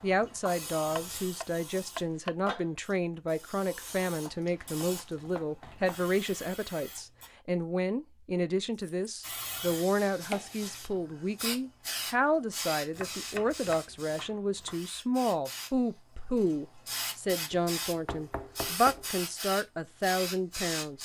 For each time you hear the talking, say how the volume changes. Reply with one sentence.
The talking can be heard from 0.0 to 20.9 s, at a steady volume.